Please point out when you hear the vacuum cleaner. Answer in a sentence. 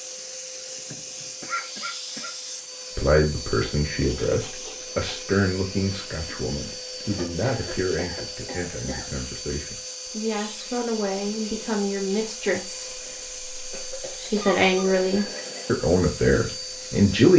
The vacuum cleaner can be heard from 0.0 to 17.3 s.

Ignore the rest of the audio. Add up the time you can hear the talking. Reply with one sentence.
You can hear the talking for 14 seconds altogether.